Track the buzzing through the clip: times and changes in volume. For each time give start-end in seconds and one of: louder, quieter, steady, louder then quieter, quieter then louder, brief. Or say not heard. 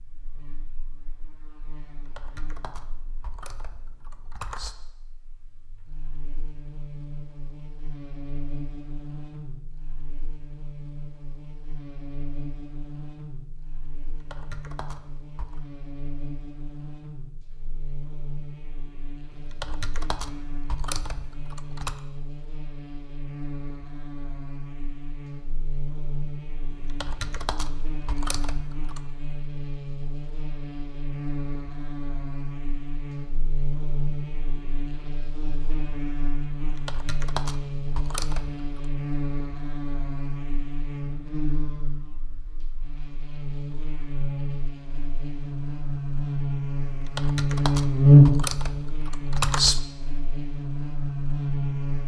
0.0-52.0 louder.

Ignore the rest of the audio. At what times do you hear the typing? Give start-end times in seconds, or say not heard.
1.9-4.8, 14.0-15.6, 19.3-22.0, 26.7-29.1, 36.5-38.9, 46.9-49.8.